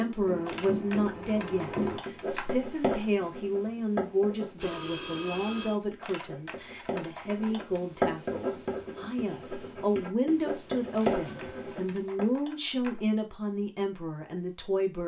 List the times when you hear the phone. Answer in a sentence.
You can hear the phone from 4.5 to 5.8 s and from 10.9 to 11.9 s.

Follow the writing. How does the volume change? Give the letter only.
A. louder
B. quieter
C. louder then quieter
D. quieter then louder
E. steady
D.